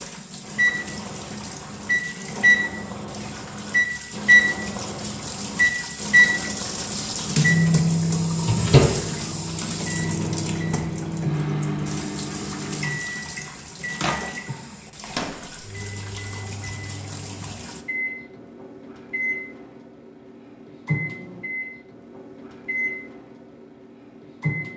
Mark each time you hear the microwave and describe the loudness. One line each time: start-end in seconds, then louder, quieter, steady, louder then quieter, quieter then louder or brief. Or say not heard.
0.0-24.7 quieter.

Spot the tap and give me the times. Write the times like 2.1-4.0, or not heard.
0.0-17.9.